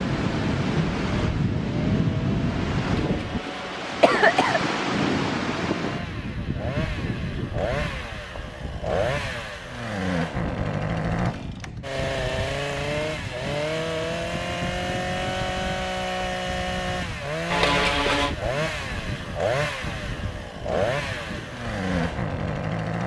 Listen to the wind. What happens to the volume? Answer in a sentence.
The volume of the wind goes down.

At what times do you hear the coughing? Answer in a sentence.
The coughing can be heard from 2.9 to 4.6 s and from 17.5 to 18.4 s.